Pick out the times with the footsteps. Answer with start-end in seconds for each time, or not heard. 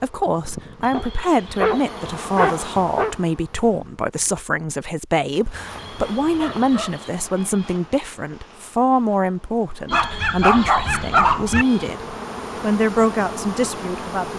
not heard.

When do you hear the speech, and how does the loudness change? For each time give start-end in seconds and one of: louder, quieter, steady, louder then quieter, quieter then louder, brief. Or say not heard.
0.0-14.3 steady.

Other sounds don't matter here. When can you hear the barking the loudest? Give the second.
11 s.